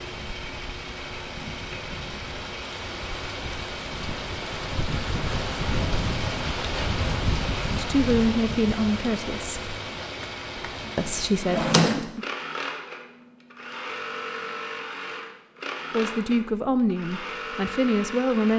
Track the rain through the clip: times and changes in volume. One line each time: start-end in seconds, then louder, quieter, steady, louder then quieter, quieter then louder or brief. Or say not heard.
0.0-11.3 louder then quieter.